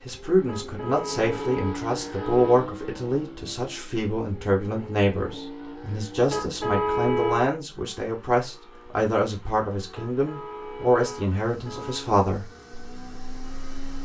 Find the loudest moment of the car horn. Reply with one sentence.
The volume of the car horn peaks at 7 seconds.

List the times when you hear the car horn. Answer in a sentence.
You can hear the car horn from 0.5 to 2.7 s, from 6.2 to 7.5 s and from 9.9 to 12.2 s.